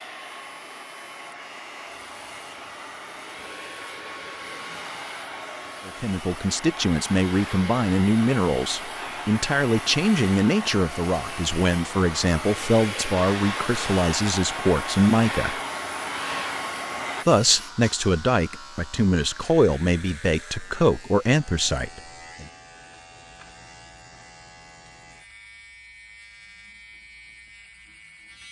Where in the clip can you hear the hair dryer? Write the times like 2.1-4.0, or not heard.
0.0-17.2.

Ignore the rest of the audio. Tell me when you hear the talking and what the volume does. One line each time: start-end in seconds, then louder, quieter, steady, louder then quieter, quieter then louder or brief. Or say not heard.
5.8-15.6 steady
17.2-22.4 steady.